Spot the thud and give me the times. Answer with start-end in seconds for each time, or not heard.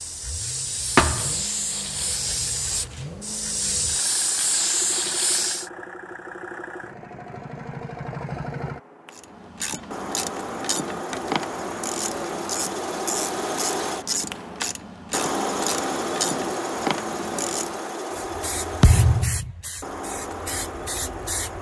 0.9-1.4, 18.8-19.5.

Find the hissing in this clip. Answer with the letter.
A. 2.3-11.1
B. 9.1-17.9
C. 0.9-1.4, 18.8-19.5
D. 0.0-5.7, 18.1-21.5
D.